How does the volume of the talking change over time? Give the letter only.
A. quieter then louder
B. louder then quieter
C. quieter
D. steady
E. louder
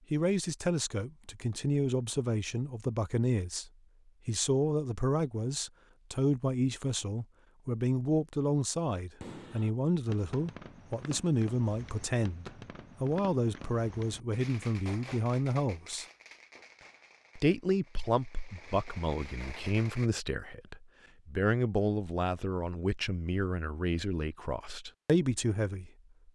D.